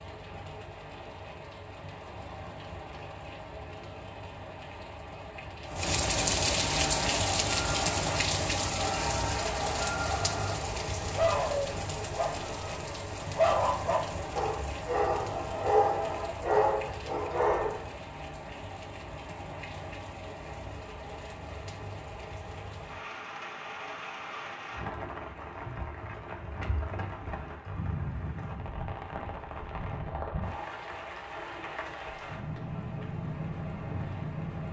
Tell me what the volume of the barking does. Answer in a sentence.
The volume of the barking goes up.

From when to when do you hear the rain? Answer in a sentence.
You can hear the rain from 0.0 to 34.6 s.